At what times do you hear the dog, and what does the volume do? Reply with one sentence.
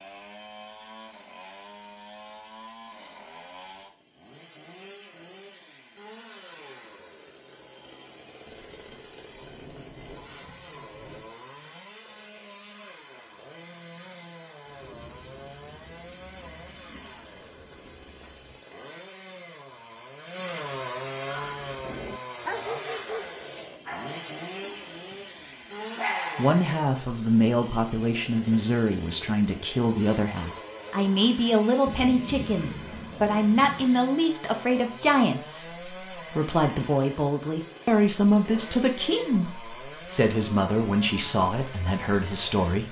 The dog can be heard from 21.2 to 26.6 s, getting quieter then louder.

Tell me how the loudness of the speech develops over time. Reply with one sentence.
The loudness of the speech stays about the same.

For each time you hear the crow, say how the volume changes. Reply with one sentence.
You can't hear the crow here.